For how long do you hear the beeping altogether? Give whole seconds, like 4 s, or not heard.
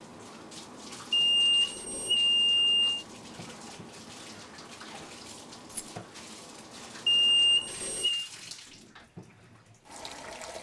3 s.